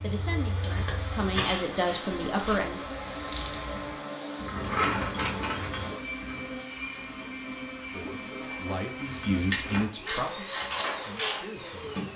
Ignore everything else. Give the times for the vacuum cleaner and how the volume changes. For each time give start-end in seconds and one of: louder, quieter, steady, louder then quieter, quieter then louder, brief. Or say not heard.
0.0-12.1 steady.